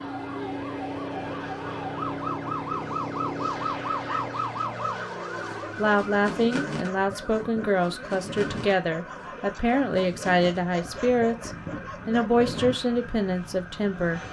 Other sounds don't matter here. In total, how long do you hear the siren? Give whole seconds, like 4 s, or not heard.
14 s.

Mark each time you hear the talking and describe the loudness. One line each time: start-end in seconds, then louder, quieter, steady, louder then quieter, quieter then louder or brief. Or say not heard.
5.8-14.2 steady.